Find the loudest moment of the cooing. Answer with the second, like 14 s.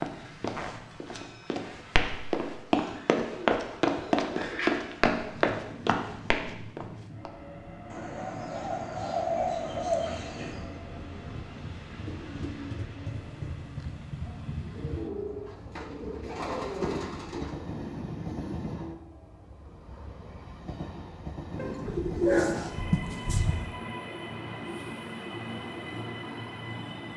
22 s.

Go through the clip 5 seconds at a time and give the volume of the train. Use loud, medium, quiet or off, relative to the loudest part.
quiet, medium, loud, loud, loud, loud.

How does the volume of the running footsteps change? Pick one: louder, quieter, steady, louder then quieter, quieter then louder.
louder then quieter.